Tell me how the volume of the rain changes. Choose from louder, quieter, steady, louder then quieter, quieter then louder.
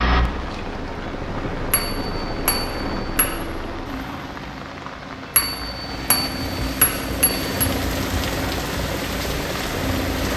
louder.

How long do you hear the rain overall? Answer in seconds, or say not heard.
10 s.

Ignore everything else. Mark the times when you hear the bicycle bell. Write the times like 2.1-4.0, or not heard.
1.7-3.4, 5.3-7.7.